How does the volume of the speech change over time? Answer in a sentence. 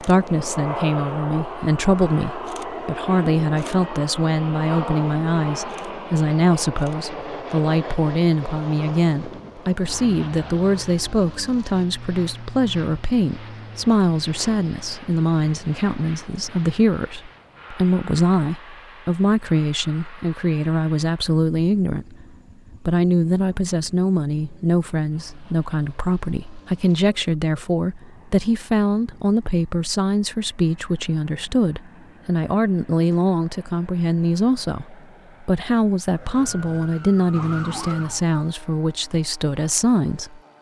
The volume of the speech stays about the same.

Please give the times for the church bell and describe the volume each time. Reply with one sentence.
You can't hear the church bell here.